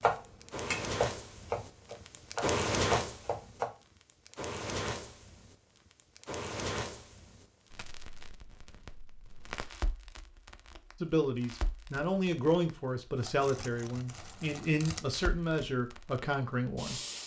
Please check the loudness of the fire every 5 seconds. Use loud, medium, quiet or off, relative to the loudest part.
loud, medium, quiet, medium.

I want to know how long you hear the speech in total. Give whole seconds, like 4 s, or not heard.
6 s.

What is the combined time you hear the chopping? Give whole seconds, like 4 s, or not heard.
4 s.